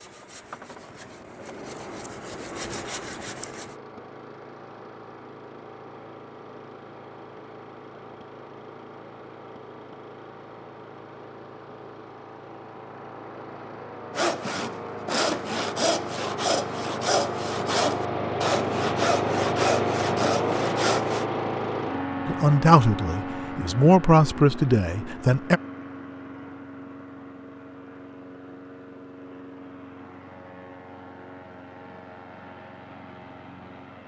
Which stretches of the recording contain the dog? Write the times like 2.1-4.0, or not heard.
not heard.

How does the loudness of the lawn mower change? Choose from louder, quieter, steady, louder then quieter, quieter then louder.
louder then quieter.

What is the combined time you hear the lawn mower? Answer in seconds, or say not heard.
34 s.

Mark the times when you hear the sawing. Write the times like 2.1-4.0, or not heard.
0.0-3.8, 14.2-21.2.